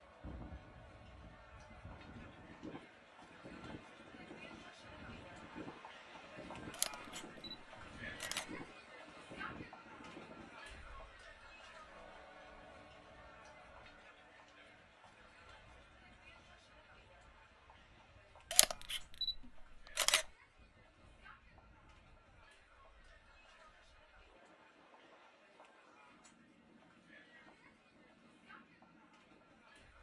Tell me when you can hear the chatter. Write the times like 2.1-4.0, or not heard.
0.0-29.9.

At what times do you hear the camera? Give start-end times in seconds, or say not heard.
6.7-8.7, 18.5-20.3.